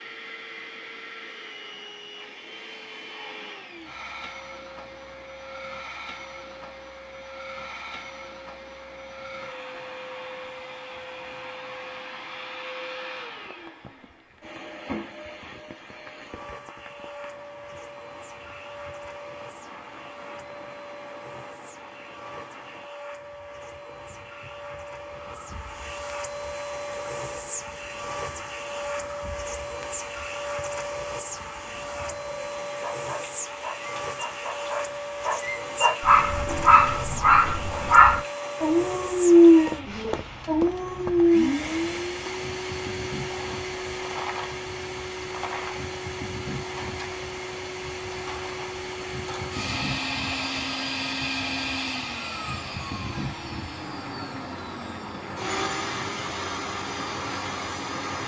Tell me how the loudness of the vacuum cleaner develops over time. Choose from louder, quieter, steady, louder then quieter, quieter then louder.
louder.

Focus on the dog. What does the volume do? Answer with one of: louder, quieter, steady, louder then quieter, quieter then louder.
louder then quieter.